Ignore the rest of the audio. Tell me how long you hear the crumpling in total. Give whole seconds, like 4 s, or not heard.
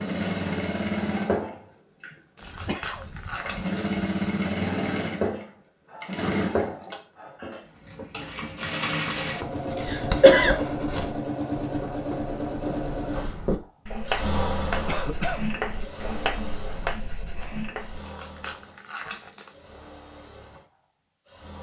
3 s.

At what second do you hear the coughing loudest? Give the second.
10 s.